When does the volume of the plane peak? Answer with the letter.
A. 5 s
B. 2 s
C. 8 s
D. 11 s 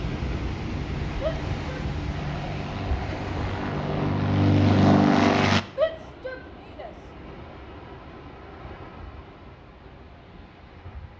A.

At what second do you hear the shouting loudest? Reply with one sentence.
The loudest moment of the shouting is at 6 seconds.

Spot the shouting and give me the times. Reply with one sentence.
The shouting can be heard from 1.2 to 1.9 s and from 5.8 to 6.9 s.